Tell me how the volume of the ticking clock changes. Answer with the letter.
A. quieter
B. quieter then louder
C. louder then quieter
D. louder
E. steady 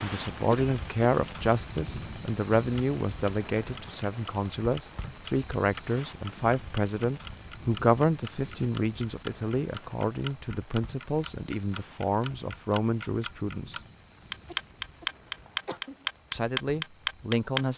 D.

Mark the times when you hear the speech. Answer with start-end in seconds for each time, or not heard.
0.0-13.8, 16.3-17.7.